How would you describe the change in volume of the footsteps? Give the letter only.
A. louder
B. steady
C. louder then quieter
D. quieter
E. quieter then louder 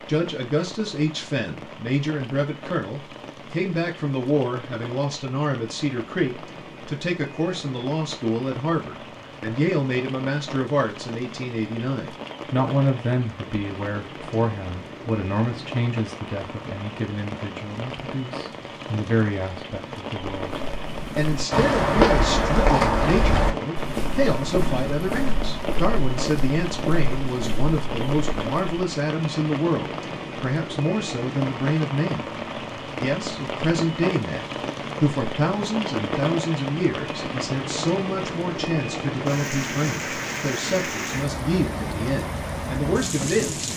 D.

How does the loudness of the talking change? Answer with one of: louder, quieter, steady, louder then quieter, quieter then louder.
steady.